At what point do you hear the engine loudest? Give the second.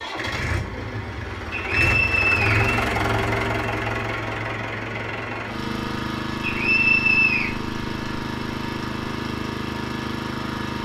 3 s.